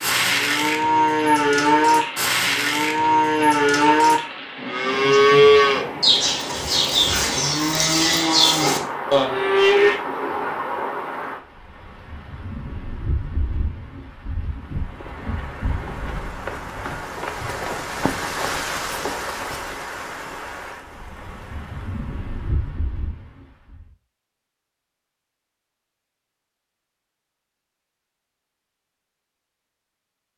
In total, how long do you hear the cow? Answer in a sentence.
The cow can be heard for 10 seconds in total.